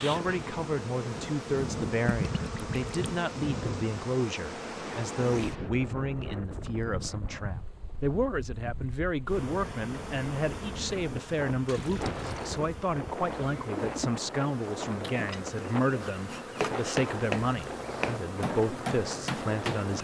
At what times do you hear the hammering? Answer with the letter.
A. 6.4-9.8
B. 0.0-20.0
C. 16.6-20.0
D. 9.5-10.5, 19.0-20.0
C.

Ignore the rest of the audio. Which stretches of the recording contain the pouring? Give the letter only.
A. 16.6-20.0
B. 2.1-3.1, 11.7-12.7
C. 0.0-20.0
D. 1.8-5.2
B.